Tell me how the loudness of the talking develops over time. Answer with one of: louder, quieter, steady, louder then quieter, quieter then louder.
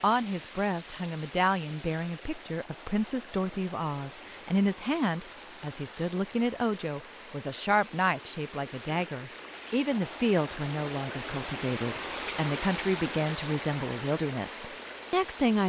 steady.